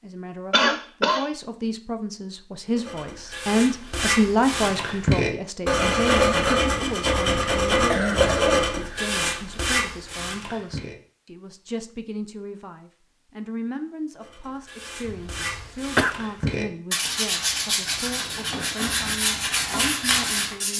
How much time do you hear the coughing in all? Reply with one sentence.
The coughing can be heard for 3 seconds in total.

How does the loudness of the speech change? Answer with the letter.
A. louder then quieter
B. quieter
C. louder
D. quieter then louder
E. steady
B.